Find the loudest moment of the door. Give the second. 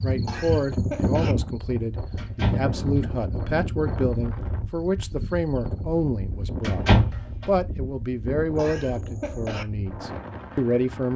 7 s.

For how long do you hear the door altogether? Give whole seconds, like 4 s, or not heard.
2 s.